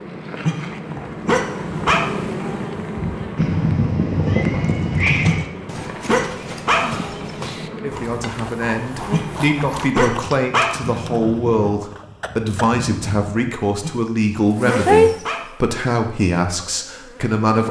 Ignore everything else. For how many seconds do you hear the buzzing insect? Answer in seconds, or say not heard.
13 s.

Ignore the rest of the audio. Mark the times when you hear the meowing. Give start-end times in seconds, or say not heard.
3.4-5.4, 10.8-11.7.